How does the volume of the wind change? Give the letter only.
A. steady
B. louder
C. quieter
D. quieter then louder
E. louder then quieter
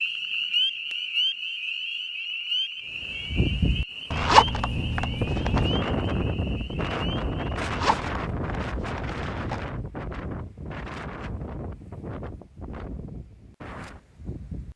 C.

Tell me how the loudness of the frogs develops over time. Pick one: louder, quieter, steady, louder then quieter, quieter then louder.
quieter.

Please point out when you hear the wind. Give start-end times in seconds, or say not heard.
2.9-14.7.